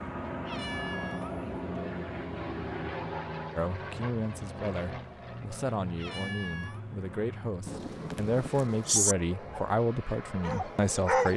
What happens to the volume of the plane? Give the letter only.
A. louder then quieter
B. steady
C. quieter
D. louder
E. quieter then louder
C.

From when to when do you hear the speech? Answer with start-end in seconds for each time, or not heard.
3.5-11.3.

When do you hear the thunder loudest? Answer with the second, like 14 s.
9 s.